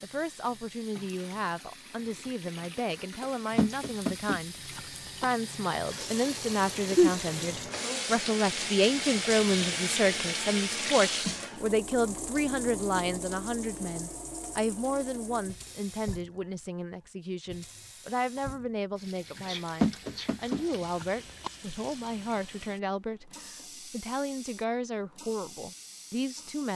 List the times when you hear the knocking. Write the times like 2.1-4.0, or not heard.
3.5-5.2, 19.8-21.5.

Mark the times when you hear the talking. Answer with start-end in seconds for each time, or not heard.
0.0-26.7.